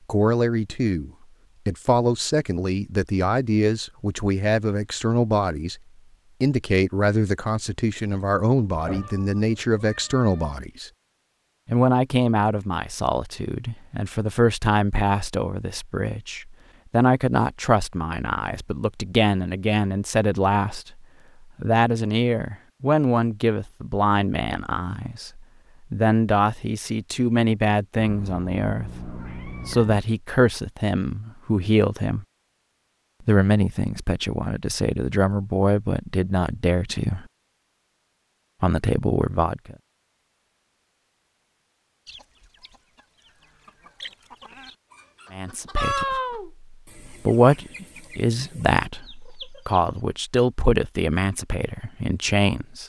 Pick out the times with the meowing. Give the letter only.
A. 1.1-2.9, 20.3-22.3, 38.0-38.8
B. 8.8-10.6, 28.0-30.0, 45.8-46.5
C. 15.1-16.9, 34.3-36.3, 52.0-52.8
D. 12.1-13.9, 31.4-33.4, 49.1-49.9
B.